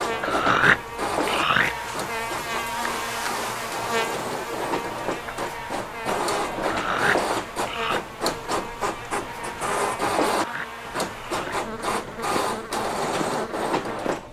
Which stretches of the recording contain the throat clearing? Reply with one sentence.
The throat clearing can be heard from 0.2 to 1.8 s, from 6.6 to 8.0 s and from 10.2 to 11.7 s.